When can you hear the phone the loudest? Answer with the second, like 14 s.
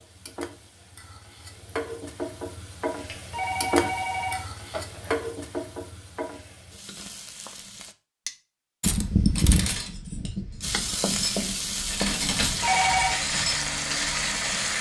13 s.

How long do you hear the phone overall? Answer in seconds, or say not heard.
3 s.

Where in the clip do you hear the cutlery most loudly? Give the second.
9 s.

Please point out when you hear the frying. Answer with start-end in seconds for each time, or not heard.
0.0-8.0, 10.6-14.7.